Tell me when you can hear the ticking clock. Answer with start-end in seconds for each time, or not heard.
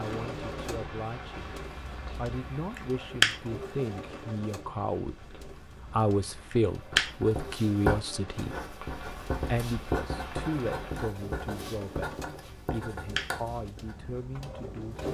not heard.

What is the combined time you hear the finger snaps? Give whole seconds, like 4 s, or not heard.
2 s.